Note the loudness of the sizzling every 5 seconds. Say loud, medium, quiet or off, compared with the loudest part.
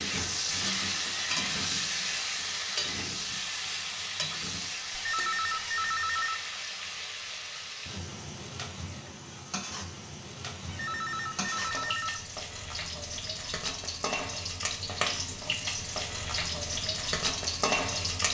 loud, medium, medium, loud.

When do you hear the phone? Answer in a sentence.
The phone can be heard from 4.9 to 6.5 s and from 10.7 to 12.2 s.